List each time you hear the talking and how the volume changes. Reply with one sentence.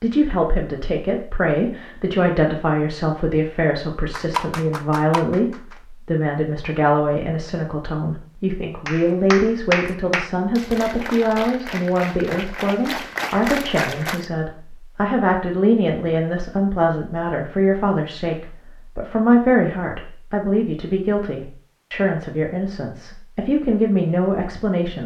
You can hear the talking from 0.0 to 25.0 s, at a steady volume.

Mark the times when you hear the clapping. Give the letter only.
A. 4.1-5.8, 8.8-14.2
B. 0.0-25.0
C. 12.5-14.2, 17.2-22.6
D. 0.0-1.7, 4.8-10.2
A.